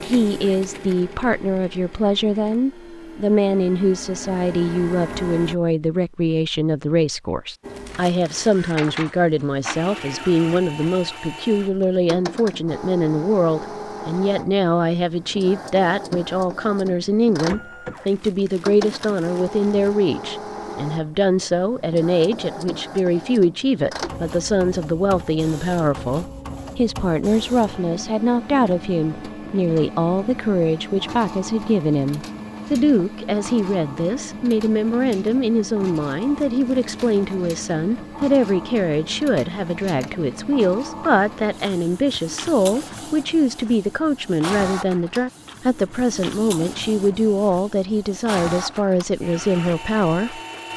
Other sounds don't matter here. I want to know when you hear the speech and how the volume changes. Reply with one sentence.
You can hear the speech from 0.0 to 50.4 s, at a steady volume.